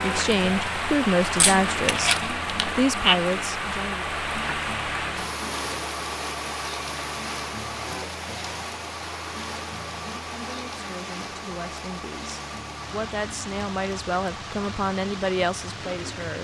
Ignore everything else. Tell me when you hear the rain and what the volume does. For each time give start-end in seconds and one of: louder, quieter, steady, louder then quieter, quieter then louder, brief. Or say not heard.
0.0-16.3 quieter.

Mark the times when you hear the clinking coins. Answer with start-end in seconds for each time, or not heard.
1.4-2.8.